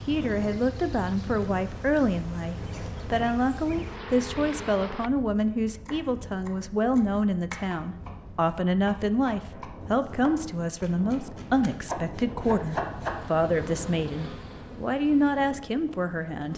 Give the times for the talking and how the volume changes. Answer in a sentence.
The talking can be heard from 0.0 to 16.5 s, at a steady volume.